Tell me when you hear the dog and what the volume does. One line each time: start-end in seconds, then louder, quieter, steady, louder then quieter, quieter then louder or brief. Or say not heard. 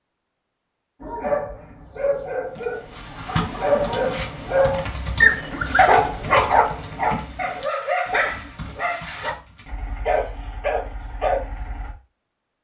1.0-11.9 louder then quieter.